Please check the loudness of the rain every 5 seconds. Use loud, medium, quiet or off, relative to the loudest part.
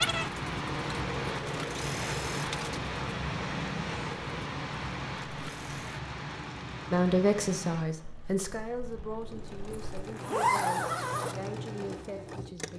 loud, medium, off.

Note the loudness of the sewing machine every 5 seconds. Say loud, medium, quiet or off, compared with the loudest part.
loud, medium, loud.